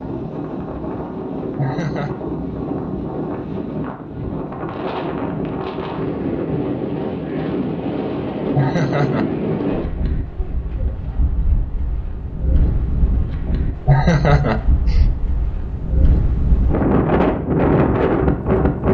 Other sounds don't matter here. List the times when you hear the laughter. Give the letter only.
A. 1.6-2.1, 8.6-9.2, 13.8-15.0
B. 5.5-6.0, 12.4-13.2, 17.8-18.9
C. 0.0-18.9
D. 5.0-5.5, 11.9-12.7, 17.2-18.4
A.